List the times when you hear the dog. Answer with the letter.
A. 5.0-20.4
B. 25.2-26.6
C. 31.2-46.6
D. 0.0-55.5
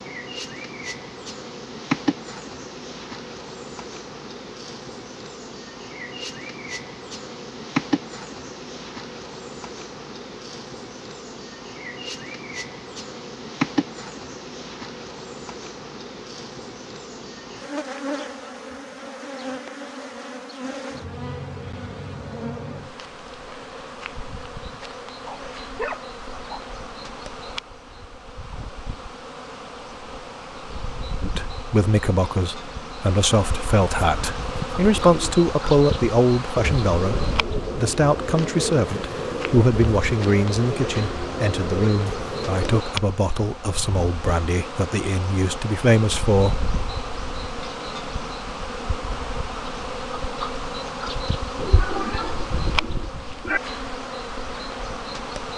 B.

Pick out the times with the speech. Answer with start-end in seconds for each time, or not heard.
31.2-46.6.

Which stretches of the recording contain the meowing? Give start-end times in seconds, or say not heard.
51.5-53.6.